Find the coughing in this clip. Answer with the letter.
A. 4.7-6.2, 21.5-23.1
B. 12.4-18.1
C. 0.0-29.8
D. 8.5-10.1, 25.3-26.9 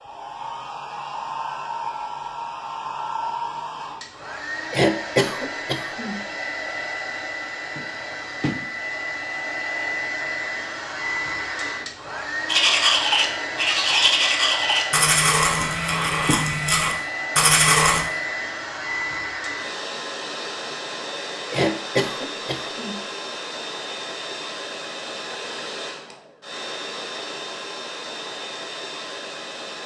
A.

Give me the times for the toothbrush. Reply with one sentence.
The toothbrush can be heard from 12.4 to 18.1 s.